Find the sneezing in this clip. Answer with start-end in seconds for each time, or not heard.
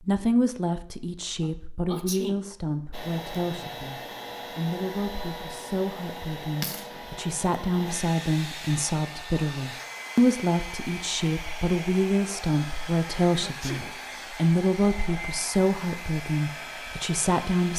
1.4-2.4, 13.3-13.9.